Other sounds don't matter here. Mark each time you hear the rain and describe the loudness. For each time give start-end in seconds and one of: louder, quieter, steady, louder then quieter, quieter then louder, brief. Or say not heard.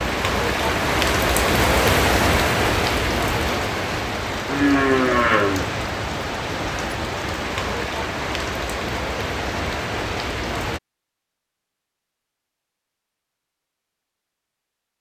0.0-10.8 quieter.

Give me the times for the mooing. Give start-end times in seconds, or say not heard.
4.5-5.8.